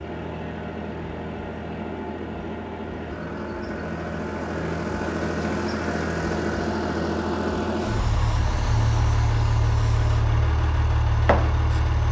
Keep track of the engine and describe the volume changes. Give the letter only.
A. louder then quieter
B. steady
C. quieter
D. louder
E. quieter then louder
D.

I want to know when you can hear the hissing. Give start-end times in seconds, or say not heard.
7.8-10.3, 11.2-11.8.